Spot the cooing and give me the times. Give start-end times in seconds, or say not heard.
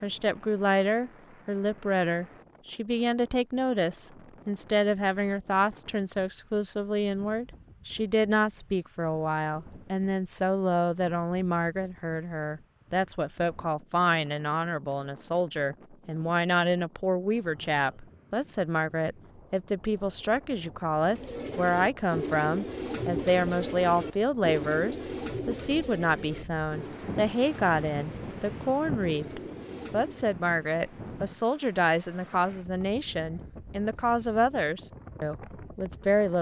21.0-30.4.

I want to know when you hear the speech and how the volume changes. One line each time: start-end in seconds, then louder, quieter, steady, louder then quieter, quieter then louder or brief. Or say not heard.
0.0-36.3 steady.